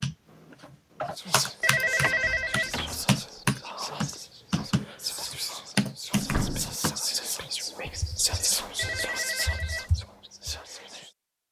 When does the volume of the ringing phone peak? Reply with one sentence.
The loudest moment of the ringing phone is at 2 seconds.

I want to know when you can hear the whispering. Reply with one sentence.
You can hear the whispering from 1.1 to 11.1 s.